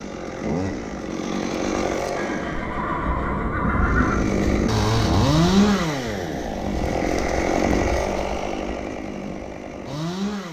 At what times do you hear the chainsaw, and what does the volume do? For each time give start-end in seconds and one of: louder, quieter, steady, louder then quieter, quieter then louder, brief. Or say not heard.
0.0-2.7 brief
3.8-10.4 quieter.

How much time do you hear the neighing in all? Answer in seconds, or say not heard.
2 s.